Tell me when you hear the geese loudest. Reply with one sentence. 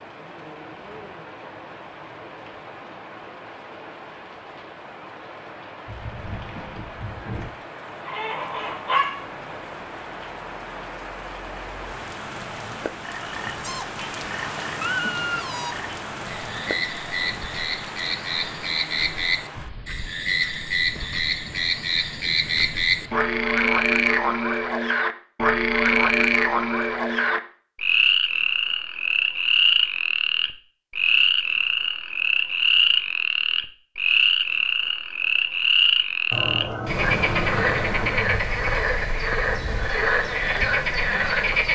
The volume of the geese peaks at 37 seconds.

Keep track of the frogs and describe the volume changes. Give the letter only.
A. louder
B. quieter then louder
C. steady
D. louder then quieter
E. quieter
A.